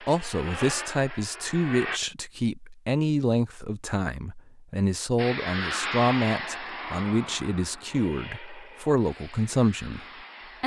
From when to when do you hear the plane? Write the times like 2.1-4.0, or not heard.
0.0-2.0, 5.2-10.6.